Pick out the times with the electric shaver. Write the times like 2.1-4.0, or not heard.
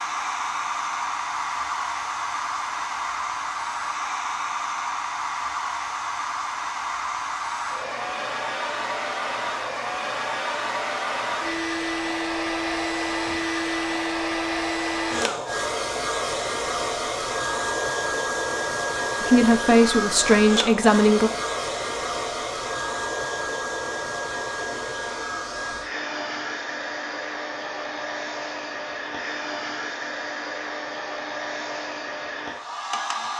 not heard.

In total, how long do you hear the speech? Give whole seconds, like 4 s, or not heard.
2 s.